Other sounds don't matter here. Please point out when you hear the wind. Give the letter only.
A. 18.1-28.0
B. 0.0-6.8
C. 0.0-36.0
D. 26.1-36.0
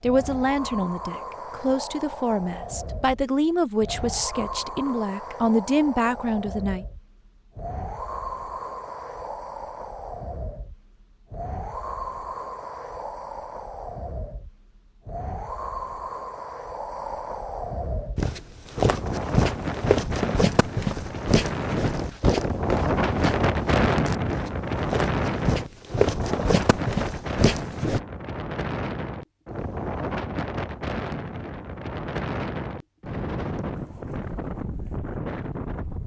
C.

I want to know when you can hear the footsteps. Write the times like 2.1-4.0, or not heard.
18.1-28.0.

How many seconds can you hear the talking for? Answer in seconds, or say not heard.
7 s.